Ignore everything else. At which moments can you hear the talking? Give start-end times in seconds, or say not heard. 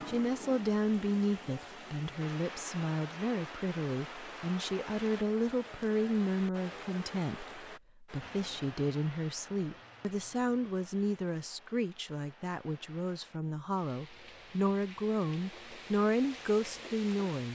0.1-17.5.